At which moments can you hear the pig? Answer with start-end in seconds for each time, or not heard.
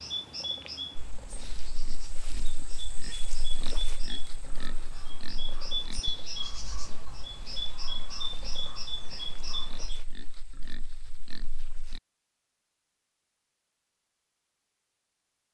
0.9-12.0.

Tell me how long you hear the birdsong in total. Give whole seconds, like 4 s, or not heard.
10 s.